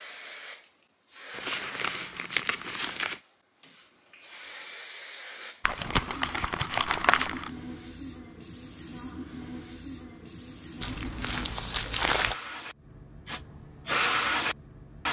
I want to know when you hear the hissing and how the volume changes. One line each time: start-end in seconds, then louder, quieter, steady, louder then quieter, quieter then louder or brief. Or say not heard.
0.0-15.0 louder.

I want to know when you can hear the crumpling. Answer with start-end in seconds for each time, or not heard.
1.3-3.2, 5.6-7.5, 10.8-12.3.